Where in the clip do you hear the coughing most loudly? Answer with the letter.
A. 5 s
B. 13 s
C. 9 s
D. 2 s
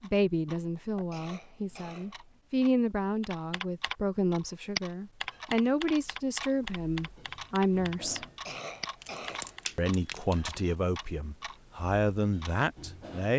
C.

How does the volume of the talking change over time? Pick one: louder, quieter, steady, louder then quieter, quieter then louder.
steady.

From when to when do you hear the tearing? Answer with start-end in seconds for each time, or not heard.
9.0-10.6.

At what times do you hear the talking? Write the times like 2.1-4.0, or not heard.
0.0-8.2, 9.8-13.3.